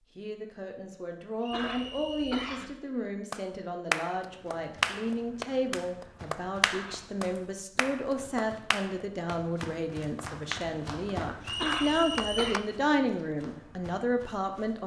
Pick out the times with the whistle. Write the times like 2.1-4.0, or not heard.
1.4-2.4, 11.4-12.7.